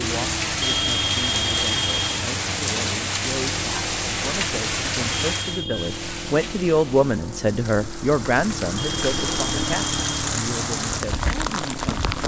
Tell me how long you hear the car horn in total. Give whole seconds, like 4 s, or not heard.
4 s.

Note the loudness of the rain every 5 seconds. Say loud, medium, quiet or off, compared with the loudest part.
loud, medium, loud.